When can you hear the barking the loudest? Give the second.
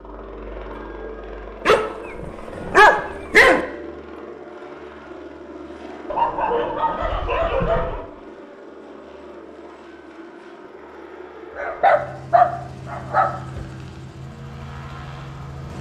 3 s.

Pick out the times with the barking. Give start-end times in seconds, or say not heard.
1.6-3.6, 6.1-8.1, 11.6-13.7.